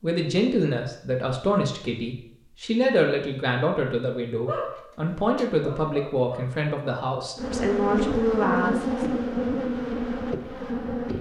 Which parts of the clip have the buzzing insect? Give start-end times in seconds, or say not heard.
7.3-11.1.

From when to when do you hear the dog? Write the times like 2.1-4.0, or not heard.
4.5-7.0.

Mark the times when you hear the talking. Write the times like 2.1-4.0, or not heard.
0.0-9.2.